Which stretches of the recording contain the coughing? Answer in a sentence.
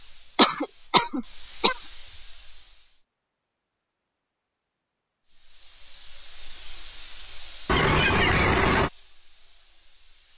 The coughing can be heard from 0.3 to 1.8 s and from 7.7 to 8.9 s.